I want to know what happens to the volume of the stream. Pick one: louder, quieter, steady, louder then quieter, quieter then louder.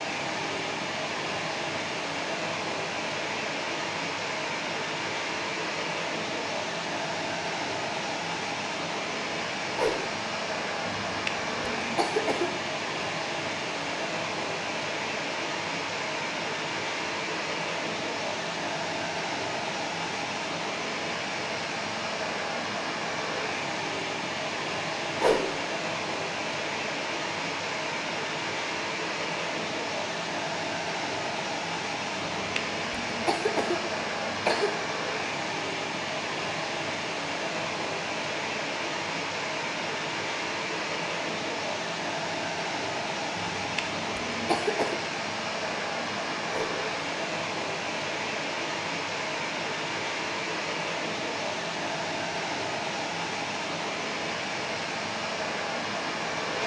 steady.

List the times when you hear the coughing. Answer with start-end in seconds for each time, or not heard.
10.9-12.7, 32.1-34.8, 43.4-45.0.